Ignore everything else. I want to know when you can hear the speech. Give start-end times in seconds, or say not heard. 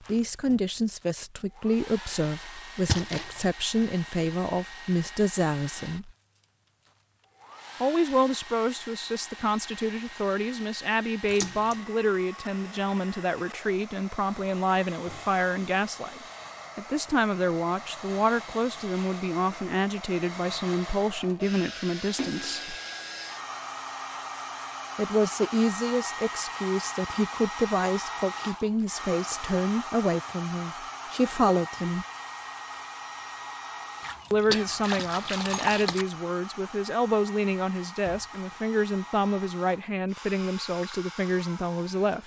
0.0-6.1, 7.8-22.8, 24.9-32.0, 34.3-42.2.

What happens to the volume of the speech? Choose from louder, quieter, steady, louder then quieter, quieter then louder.
steady.